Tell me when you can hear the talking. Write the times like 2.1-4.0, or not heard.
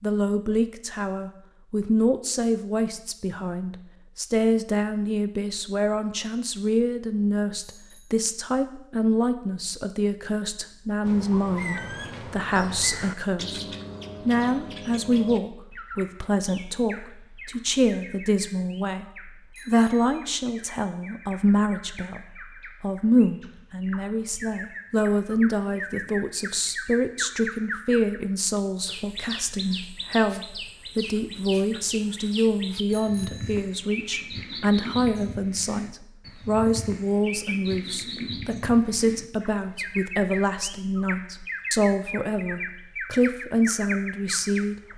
0.0-13.7, 14.2-44.8.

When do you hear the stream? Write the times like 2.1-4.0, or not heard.
not heard.